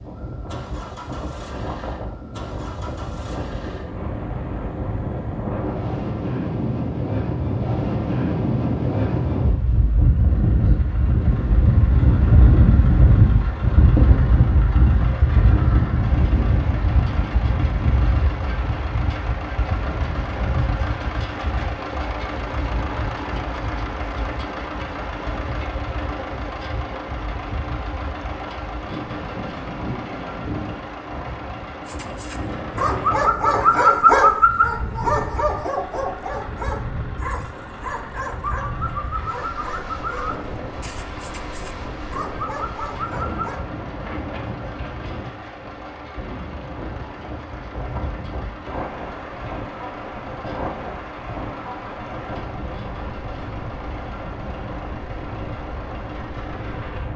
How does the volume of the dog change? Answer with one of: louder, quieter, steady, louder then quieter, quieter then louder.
quieter.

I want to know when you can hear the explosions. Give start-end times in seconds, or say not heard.
not heard.